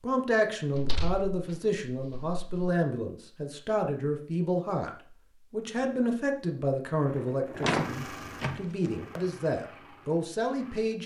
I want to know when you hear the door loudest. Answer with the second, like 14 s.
8 s.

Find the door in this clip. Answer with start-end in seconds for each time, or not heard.
0.8-2.5, 7.6-8.6.